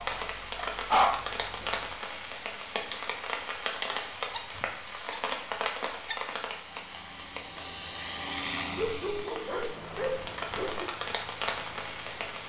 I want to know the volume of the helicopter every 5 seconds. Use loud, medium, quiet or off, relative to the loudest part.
quiet, loud, quiet.